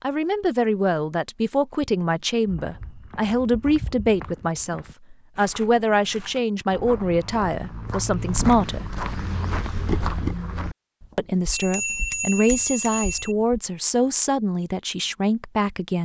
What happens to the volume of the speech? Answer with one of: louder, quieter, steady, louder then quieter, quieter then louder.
steady.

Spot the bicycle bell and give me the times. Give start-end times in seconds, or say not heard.
11.5-13.3.